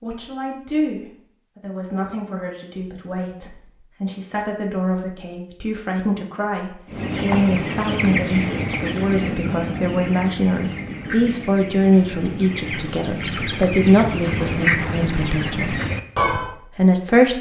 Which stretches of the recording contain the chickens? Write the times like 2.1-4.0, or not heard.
6.8-16.6.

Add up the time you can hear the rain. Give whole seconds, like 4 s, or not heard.
not heard.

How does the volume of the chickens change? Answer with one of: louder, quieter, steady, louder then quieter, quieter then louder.
quieter then louder.